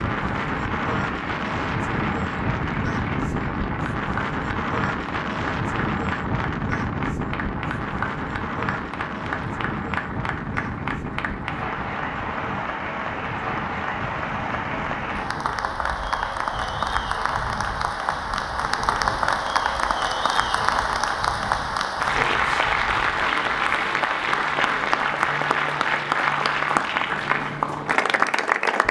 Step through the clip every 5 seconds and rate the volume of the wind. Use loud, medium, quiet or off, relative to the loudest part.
loud, loud, medium, quiet, quiet, quiet.